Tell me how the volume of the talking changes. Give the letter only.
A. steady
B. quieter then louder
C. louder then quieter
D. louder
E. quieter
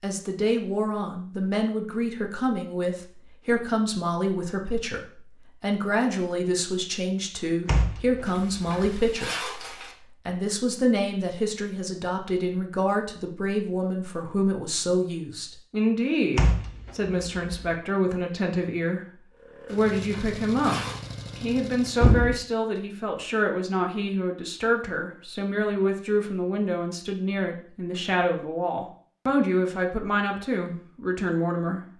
A.